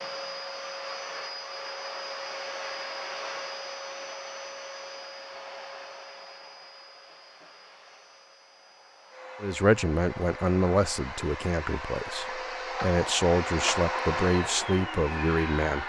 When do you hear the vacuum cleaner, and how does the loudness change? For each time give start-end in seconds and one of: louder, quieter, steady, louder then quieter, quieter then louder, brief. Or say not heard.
0.0-15.8 quieter then louder.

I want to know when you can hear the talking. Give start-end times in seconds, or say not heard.
9.4-15.8.